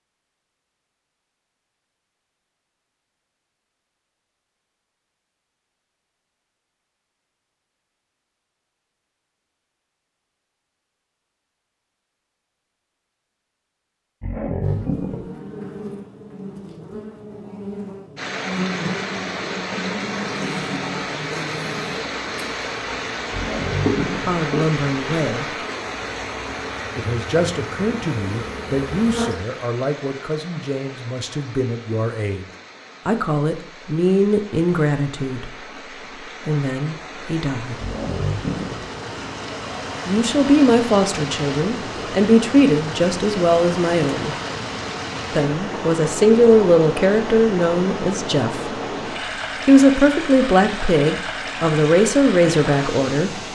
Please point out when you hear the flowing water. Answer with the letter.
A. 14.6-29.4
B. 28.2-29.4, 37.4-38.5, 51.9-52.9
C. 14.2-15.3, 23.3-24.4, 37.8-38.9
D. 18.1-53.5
D.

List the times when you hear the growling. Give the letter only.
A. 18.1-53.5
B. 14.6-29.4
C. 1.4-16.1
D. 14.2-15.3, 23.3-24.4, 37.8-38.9
D.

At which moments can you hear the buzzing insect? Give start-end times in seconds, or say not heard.
14.6-29.4.